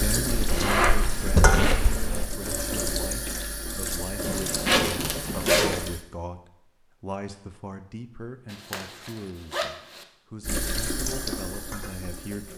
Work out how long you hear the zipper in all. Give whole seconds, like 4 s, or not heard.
5 s.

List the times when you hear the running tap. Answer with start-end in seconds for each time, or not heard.
0.0-6.0, 10.4-12.5.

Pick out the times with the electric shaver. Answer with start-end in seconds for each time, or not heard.
not heard.